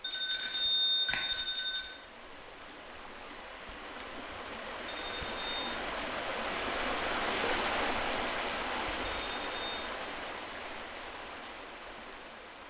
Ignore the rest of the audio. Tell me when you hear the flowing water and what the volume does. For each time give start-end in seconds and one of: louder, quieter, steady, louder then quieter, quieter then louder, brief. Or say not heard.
0.0-12.6 louder then quieter.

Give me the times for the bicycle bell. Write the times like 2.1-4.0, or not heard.
0.0-1.9, 4.8-5.7, 9.1-9.8.